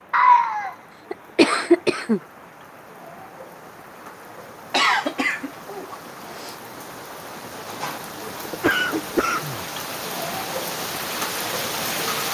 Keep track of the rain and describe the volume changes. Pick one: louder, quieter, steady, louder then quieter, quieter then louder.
louder.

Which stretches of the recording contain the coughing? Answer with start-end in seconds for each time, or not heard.
0.1-2.2, 4.7-6.5, 8.5-9.7.